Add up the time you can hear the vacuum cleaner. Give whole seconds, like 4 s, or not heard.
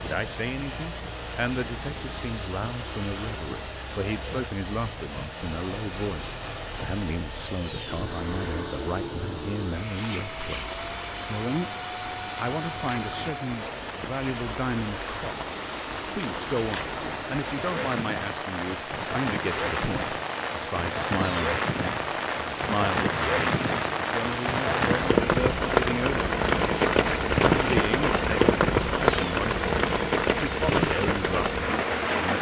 32 s.